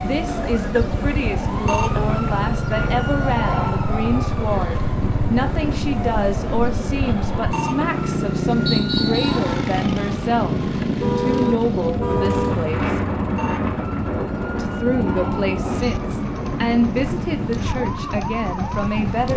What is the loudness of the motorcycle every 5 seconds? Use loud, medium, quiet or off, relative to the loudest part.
loud, loud, medium, medium.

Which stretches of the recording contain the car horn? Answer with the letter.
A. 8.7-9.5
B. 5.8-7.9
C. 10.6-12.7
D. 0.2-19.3
C.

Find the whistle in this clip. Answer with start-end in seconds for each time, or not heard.
8.7-9.5.